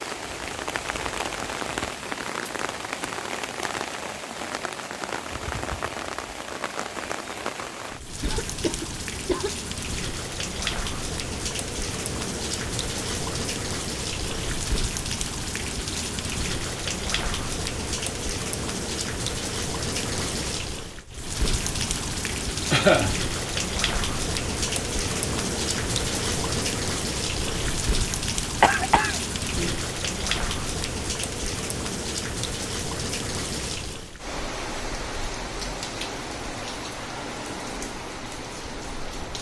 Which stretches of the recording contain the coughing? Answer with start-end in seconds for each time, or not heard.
8.2-9.6, 22.7-23.1, 28.6-29.7.